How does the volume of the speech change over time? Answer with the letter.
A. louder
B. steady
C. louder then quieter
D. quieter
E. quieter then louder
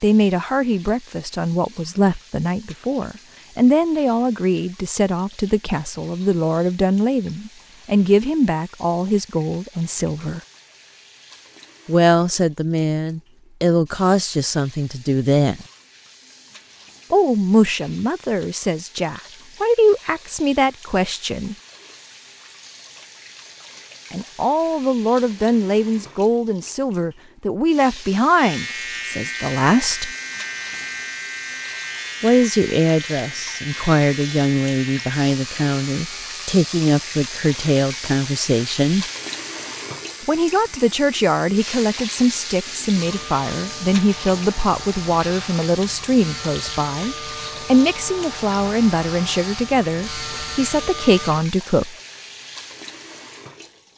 B.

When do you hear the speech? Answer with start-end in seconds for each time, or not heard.
0.0-10.4, 11.8-15.7, 17.1-21.6, 24.1-30.1, 32.2-39.0, 40.2-52.0.